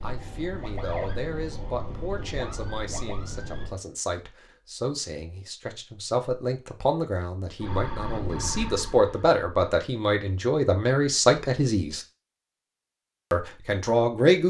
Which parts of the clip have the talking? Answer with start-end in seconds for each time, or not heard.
0.0-12.1, 13.3-14.4.